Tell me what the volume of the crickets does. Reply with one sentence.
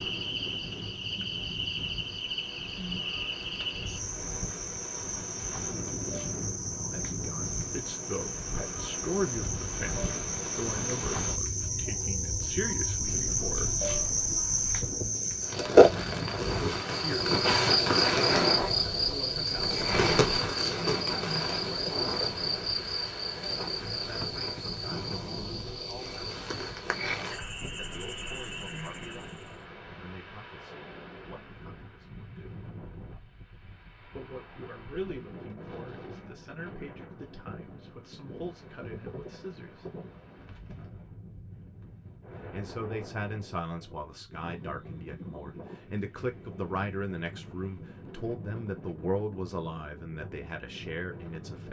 The volume of the crickets goes up, then down.